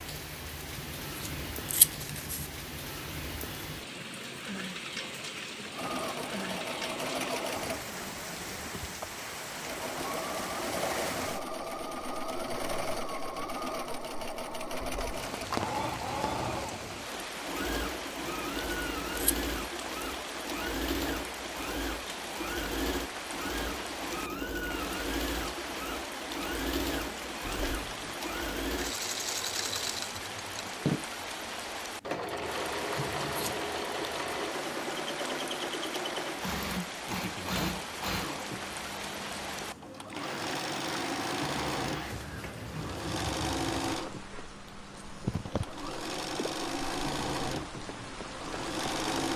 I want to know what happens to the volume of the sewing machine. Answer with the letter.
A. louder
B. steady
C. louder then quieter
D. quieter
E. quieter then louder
B.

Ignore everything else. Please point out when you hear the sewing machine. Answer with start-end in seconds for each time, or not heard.
5.7-49.3.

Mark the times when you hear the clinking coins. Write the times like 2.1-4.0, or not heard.
14.8-15.7, 27.4-28.2.